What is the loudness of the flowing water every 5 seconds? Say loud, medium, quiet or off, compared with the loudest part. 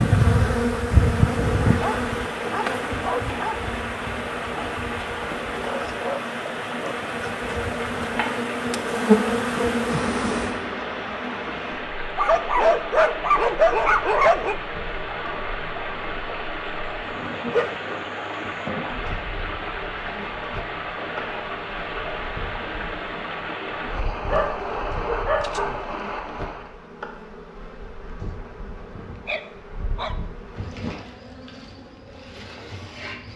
loud, loud, loud, loud, loud, loud, off.